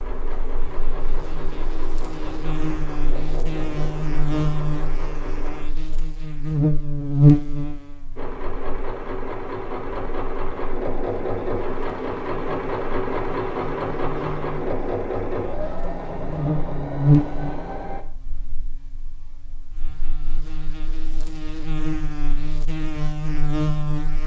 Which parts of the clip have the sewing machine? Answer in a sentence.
The sewing machine can be heard from 0.0 to 5.7 s and from 8.2 to 18.1 s.